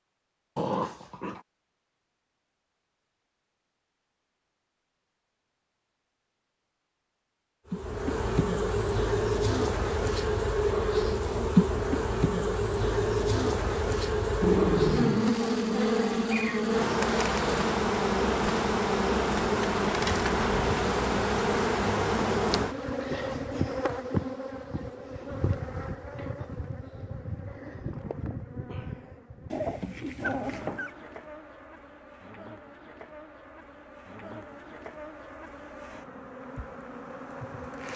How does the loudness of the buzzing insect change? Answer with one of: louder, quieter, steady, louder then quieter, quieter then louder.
quieter.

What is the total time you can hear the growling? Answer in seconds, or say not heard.
3 s.